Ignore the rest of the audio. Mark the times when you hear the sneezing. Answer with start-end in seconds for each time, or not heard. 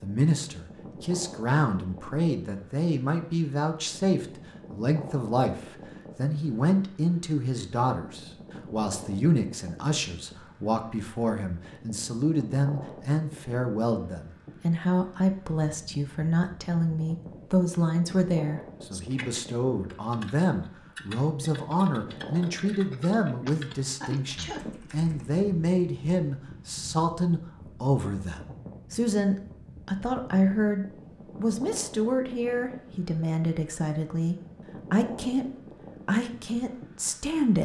23.4-24.8.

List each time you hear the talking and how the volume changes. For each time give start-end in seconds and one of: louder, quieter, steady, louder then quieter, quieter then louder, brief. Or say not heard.
0.0-37.5 steady.